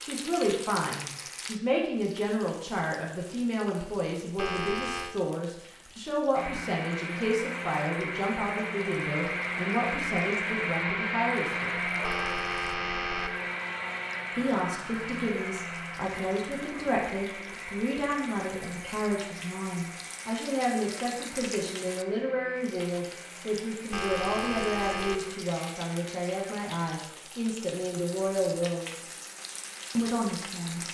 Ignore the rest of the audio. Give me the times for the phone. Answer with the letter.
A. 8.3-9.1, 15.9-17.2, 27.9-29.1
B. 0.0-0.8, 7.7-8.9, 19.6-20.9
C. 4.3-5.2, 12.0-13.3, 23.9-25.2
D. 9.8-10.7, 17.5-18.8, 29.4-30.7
C.